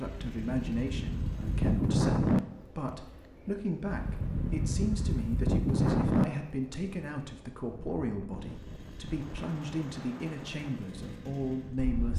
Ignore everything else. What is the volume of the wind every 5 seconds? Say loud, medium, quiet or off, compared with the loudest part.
loud, loud, quiet.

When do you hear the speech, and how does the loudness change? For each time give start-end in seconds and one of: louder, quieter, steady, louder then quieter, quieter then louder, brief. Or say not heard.
0.0-12.1 steady.